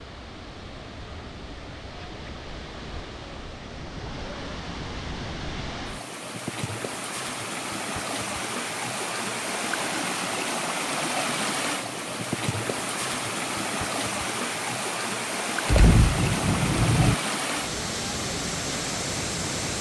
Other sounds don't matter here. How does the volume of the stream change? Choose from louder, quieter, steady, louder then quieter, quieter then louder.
louder.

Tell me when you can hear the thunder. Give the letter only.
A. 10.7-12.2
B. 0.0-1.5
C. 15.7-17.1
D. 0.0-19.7
C.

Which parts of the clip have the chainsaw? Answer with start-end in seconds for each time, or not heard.
not heard.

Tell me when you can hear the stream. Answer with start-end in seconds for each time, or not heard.
0.0-19.7.